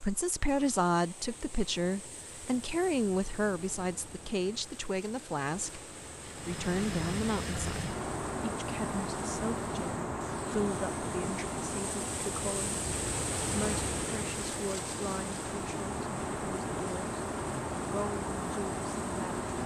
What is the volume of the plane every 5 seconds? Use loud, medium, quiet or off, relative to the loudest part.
off, loud, loud, loud.